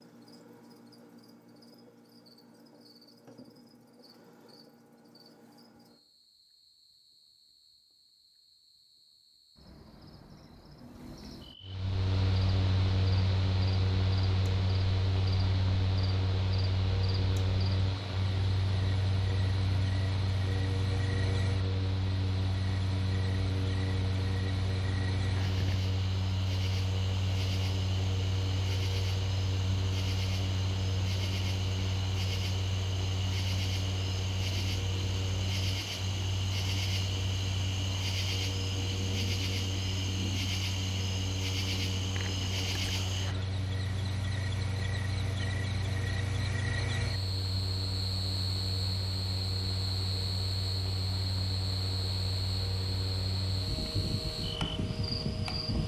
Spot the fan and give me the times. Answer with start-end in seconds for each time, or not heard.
11.6-55.8.